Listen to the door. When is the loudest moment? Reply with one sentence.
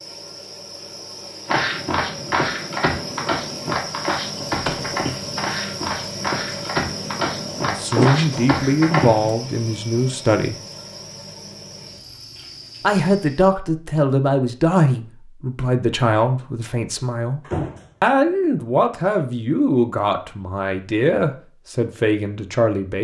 The loudest moment of the door is at 8 seconds.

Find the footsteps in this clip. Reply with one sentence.
The footsteps can be heard from 1.4 to 9.3 s.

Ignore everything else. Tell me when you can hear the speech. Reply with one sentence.
You can hear the speech from 7.6 to 10.6 s and from 12.8 to 22.9 s.